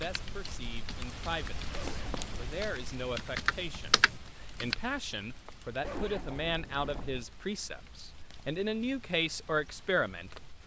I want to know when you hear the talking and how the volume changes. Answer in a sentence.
You can hear the talking from 0.0 to 10.6 s, getting louder.